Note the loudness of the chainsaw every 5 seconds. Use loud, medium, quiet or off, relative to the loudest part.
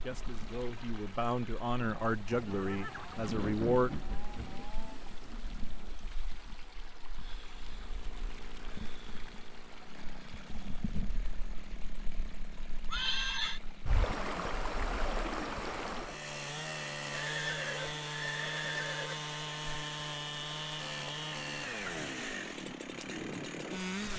quiet, quiet, quiet, loud, loud.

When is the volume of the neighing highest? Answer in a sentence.
The loudest moment of the neighing is at 13 seconds.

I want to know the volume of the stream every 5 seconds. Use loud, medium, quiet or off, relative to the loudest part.
medium, medium, loud, loud, medium.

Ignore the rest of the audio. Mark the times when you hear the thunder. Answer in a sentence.
The thunder can be heard from 3.1 to 6.0 s.